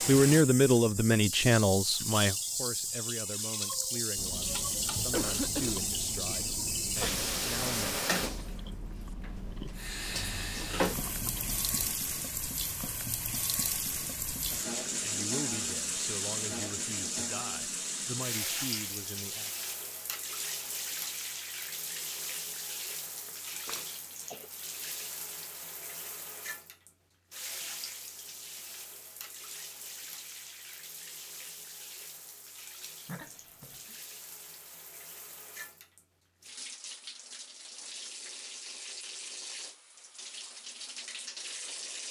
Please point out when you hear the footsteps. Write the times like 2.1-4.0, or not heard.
not heard.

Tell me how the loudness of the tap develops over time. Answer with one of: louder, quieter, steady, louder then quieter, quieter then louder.
quieter.